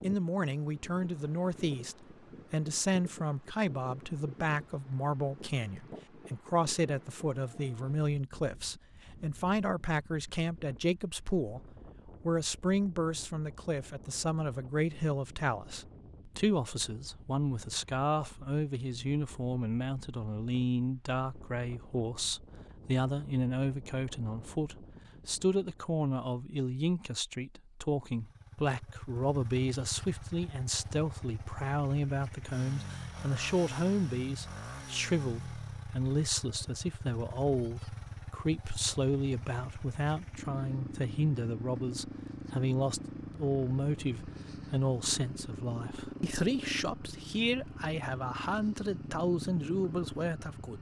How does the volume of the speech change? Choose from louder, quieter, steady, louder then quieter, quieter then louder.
steady.